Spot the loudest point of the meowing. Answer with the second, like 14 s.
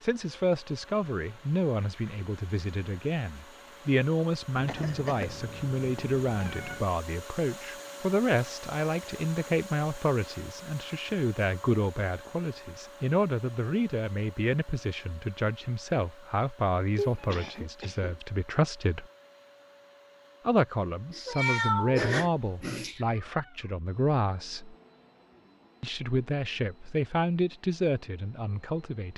22 s.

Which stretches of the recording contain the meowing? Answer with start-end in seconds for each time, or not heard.
4.5-6.8, 16.9-17.6, 21.1-23.1.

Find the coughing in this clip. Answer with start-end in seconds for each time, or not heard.
4.7-5.3, 16.9-18.2.